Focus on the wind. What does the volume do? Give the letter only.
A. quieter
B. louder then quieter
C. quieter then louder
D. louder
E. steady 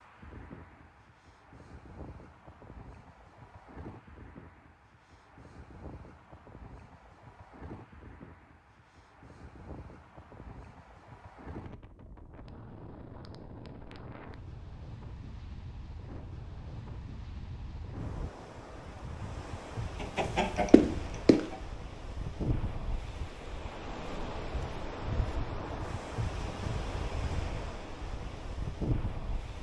D.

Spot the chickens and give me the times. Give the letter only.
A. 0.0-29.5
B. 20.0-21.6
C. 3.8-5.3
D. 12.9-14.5
B.